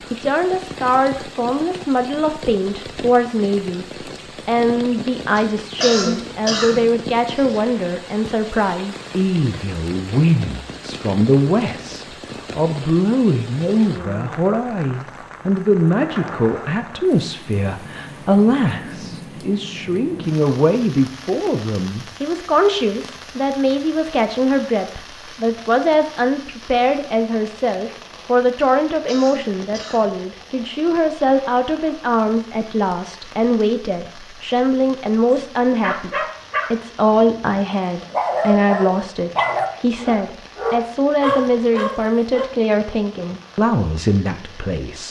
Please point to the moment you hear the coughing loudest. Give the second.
6 s.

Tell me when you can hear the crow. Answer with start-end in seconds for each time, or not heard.
not heard.